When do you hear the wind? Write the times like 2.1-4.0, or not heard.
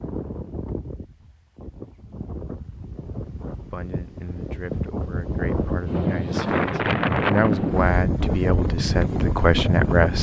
0.0-10.1.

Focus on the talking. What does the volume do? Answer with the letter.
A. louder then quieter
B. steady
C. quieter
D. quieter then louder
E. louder
E.